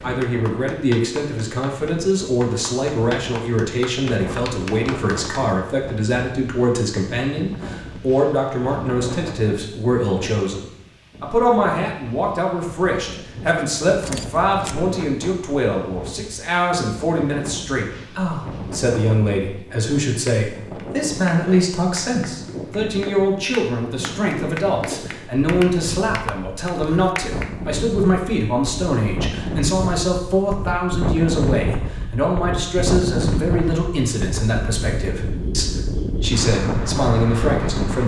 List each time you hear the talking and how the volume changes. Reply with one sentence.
You can hear the talking from 0.0 to 38.0 s, at a steady volume.